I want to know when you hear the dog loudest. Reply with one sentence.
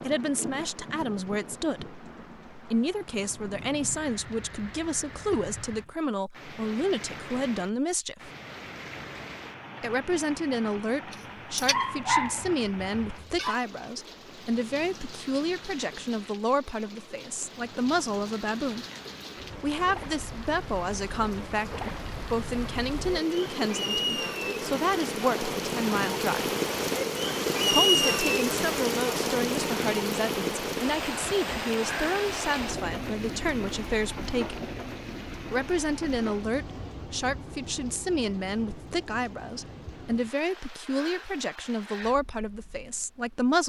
The loudest moment of the dog is at 12 seconds.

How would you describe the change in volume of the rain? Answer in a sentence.
The volume of the rain goes up, then down.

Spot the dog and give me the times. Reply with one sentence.
The dog can be heard from 11.1 to 13.6 s.